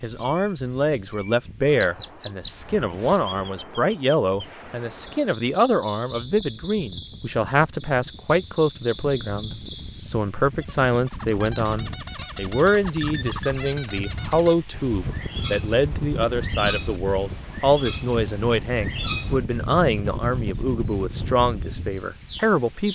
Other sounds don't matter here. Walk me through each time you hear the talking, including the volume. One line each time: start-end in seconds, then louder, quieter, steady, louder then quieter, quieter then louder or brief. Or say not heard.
0.0-22.9 steady.